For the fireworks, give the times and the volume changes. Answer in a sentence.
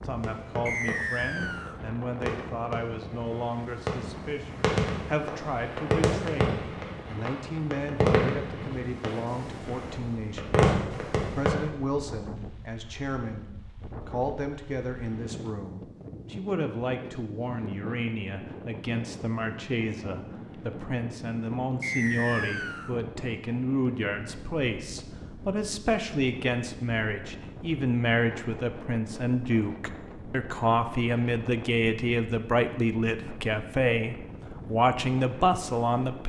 You can hear the fireworks from 0.2 to 11.7 s, getting louder.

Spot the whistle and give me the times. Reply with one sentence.
You can hear the whistle from 0.7 to 1.8 s and from 21.8 to 22.9 s.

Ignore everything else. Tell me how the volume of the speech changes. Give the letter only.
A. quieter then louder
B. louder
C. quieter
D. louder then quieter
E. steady
B.